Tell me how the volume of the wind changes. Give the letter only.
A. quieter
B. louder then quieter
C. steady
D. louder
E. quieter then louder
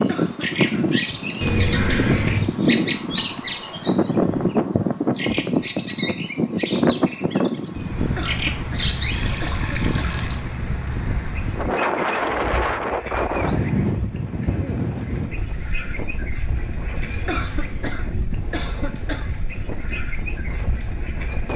A.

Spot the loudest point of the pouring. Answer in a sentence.
The loudest moment of the pouring is at 2 seconds.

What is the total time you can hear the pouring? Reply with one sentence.
You can hear the pouring for 5 seconds altogether.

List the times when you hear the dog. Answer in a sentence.
The dog can't be heard in this clip.